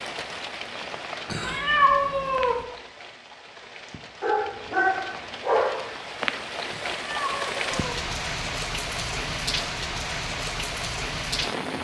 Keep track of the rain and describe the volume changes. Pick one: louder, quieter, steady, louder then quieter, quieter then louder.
quieter then louder.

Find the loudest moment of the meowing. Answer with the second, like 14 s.
2 s.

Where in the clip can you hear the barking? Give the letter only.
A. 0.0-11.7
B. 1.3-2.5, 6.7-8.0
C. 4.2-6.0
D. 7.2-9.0
C.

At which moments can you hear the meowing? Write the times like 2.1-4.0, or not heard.
1.3-2.5, 6.7-8.0.